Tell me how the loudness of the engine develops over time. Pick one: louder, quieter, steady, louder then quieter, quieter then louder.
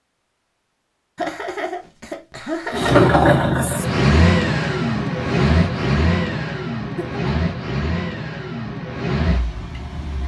quieter.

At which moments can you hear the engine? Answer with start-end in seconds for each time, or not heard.
2.7-10.2.